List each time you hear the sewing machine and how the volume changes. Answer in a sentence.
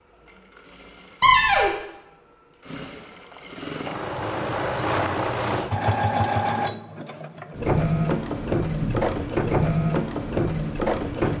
The sewing machine can be heard from 0.0 to 11.3 s, getting louder.